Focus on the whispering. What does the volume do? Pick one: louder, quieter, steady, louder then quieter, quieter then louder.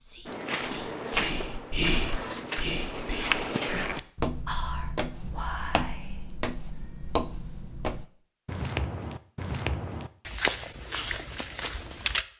louder then quieter.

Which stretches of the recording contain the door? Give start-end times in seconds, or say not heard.
1.8-2.5.